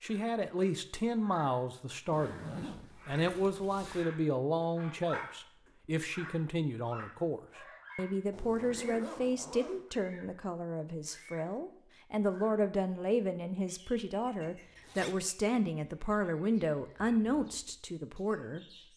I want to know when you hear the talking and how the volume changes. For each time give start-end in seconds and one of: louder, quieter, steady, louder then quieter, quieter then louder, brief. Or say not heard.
0.0-18.6 steady.